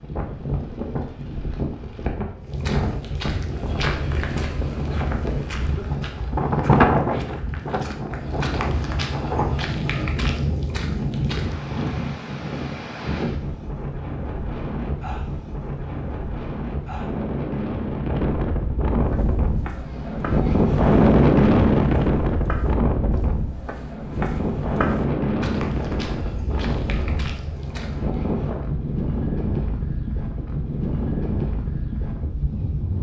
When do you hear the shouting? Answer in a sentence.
You can't hear the shouting here.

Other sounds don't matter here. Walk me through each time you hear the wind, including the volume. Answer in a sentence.
The wind can be heard from 0.0 to 32.9 s, getting louder then quieter.